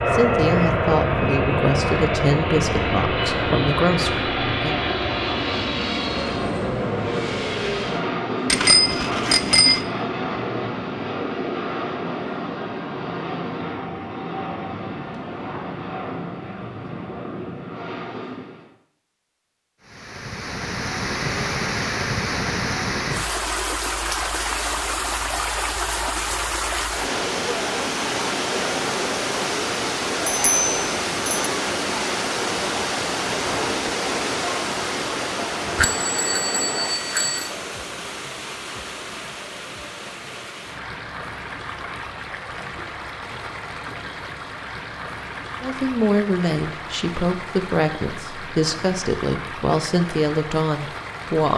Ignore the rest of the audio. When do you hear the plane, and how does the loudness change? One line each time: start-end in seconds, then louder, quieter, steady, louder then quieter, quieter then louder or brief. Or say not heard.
0.0-18.7 quieter.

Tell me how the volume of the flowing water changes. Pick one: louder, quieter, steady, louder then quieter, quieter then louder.
quieter.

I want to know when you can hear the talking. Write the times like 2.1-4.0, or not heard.
0.1-4.8, 45.6-51.5.